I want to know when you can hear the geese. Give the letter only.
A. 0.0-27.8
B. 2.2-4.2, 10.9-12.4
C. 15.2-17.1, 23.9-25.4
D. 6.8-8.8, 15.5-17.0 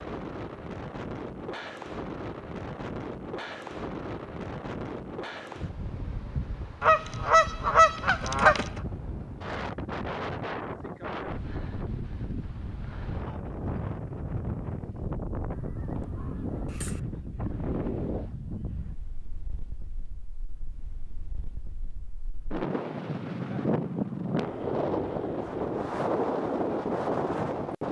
D.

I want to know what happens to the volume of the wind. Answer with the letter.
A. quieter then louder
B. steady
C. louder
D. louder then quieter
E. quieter
C.